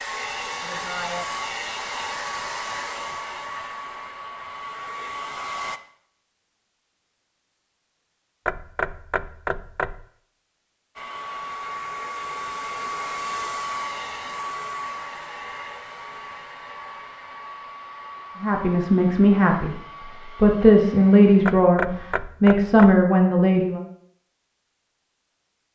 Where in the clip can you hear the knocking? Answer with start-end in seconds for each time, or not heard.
8.4-10.1, 21.4-23.1.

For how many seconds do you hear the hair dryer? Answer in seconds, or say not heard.
17 s.